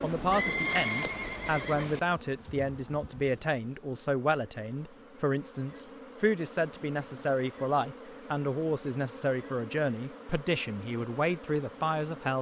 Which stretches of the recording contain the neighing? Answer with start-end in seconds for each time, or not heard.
0.0-2.0.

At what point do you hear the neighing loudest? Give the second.
1 s.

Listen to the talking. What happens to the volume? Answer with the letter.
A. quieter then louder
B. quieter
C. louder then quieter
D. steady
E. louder
D.